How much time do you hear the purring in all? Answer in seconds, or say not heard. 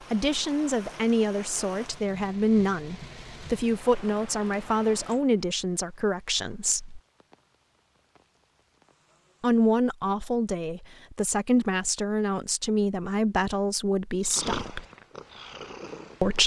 2 s.